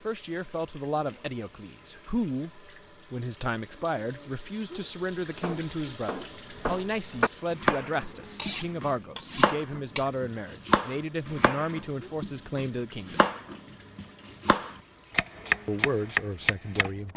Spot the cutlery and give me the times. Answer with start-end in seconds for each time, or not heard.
8.3-10.1.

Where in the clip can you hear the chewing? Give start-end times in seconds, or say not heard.
not heard.